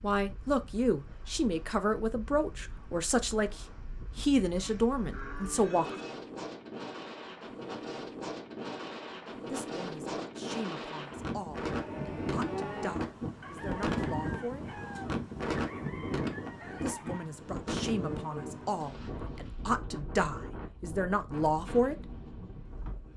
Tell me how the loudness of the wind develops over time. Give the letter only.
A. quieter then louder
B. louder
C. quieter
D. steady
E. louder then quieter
E.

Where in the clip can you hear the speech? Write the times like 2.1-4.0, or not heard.
0.0-6.0, 9.4-14.8, 16.8-22.1.